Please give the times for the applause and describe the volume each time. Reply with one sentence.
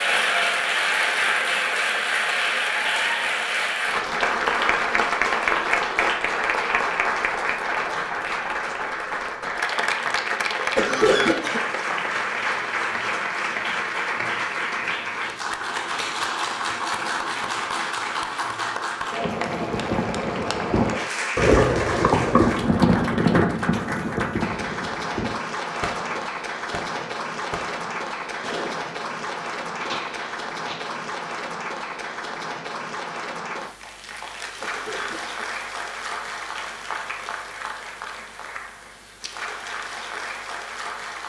You can hear the applause from 0.0 to 41.2 s, getting quieter.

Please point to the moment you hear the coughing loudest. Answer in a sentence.
The volume of the coughing peaks at 11 seconds.